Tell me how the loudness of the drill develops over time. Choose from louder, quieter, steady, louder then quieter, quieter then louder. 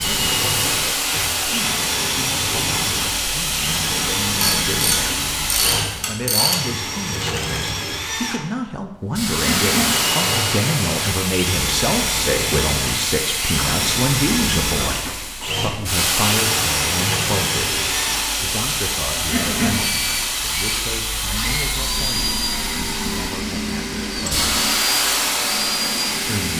steady.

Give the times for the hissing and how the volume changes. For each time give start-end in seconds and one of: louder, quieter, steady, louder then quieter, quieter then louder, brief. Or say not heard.
0.0-6.1 steady
9.2-26.5 steady.